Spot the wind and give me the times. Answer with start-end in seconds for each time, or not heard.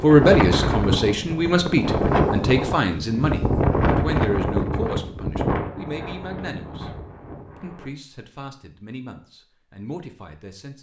0.0-7.9.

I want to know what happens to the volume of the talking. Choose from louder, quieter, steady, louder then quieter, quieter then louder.
quieter.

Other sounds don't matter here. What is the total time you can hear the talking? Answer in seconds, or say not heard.
10 s.